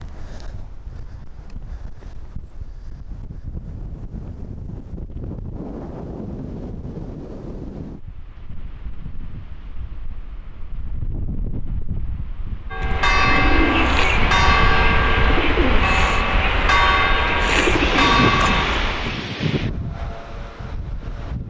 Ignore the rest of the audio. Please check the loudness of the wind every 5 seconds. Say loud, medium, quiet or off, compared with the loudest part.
quiet, medium, medium, loud, medium.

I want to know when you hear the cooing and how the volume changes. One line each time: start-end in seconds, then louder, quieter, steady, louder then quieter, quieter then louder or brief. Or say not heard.
12.8-19.2 steady.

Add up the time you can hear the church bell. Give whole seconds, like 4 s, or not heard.
6 s.